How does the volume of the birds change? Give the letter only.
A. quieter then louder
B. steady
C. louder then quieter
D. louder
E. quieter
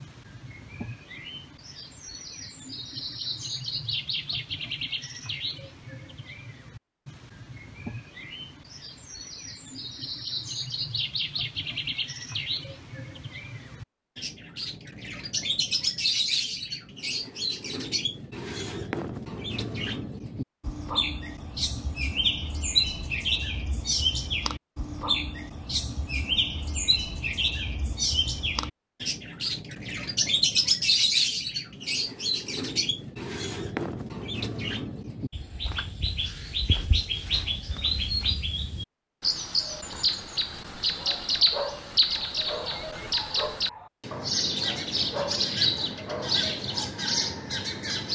D.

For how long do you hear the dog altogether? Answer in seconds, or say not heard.
6 s.